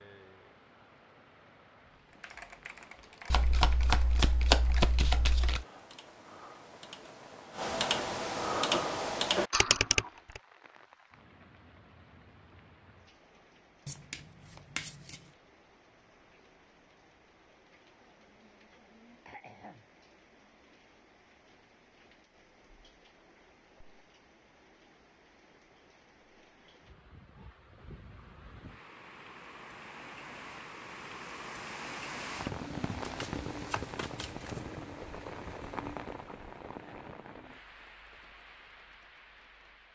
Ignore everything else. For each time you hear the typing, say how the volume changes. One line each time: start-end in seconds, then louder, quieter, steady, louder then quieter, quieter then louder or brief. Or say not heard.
2.1-10.4 louder.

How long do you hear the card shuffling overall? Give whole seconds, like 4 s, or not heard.
5 s.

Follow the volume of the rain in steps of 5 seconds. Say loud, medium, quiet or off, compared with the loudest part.
quiet, quiet, quiet, quiet, quiet, quiet, loud, medium.